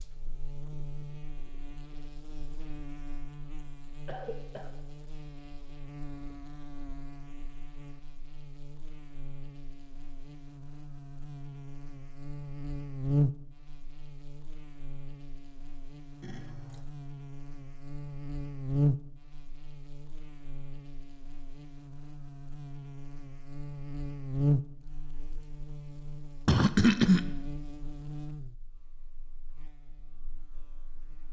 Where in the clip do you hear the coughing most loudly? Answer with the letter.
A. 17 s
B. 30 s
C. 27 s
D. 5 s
C.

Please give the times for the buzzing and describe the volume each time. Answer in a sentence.
You can hear the buzzing from 0.0 to 31.2 s, getting louder then quieter.